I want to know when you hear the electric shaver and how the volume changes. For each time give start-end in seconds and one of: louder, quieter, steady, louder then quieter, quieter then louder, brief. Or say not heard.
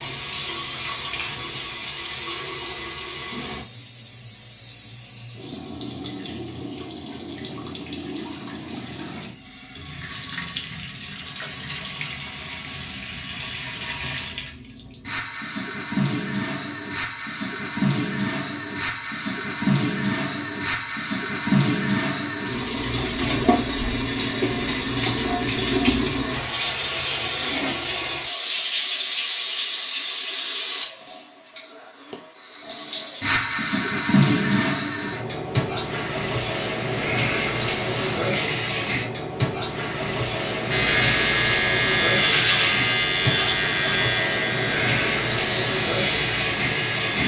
40.7-47.2 quieter.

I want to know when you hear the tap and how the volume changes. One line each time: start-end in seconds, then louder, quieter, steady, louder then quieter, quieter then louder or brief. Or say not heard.
0.0-47.2 louder.